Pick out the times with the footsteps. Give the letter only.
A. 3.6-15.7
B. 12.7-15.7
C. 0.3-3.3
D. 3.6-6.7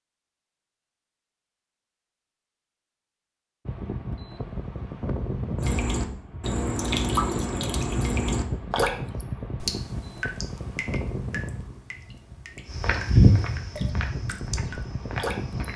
B.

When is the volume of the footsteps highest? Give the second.
13 s.